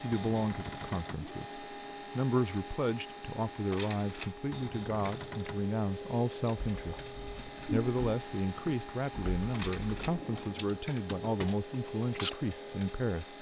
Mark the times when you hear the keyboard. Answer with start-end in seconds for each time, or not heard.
6.5-12.8.